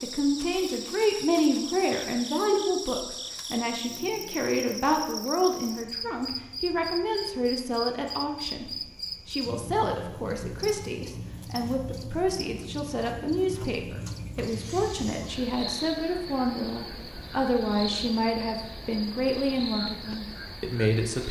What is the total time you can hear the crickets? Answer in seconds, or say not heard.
21 s.